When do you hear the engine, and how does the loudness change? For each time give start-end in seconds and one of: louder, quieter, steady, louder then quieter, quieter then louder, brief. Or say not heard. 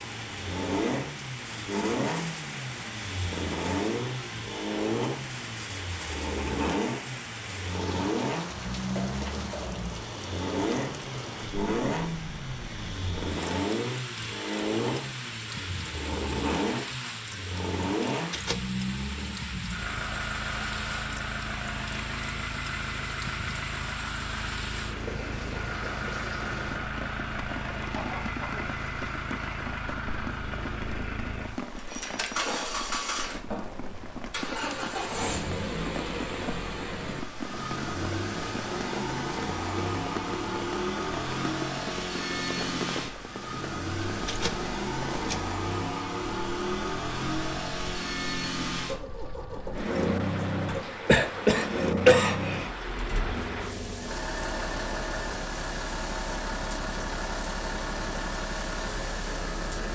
0.0-59.9 steady.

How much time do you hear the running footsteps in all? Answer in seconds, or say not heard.
not heard.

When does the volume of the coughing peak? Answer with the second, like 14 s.
52 s.